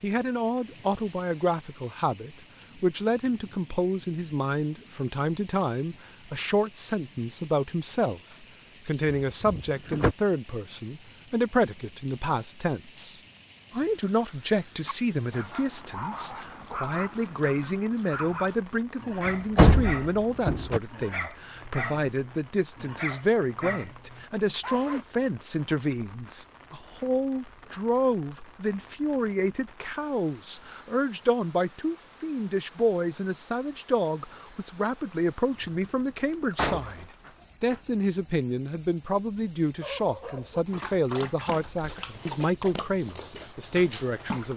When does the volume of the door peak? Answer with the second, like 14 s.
20 s.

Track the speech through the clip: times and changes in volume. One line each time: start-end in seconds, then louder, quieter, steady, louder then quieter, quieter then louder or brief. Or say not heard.
0.0-44.5 steady.